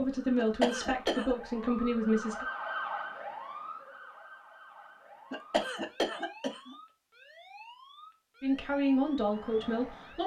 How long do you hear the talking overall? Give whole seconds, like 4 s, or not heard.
4 s.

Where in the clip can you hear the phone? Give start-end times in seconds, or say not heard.
not heard.